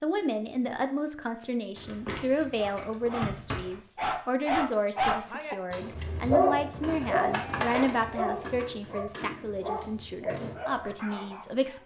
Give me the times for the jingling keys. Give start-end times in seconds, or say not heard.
1.8-3.8, 6.8-8.4.